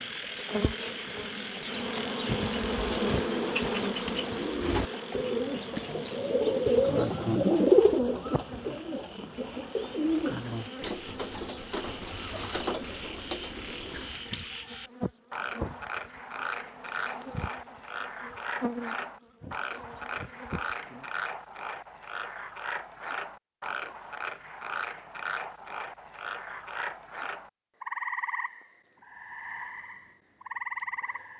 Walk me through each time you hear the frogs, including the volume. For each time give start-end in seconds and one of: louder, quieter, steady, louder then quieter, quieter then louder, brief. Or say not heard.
0.0-31.3 quieter then louder.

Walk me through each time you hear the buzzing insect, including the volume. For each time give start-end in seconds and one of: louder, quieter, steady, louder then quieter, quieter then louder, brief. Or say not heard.
0.0-21.1 quieter.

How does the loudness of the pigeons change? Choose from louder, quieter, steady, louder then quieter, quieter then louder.
louder then quieter.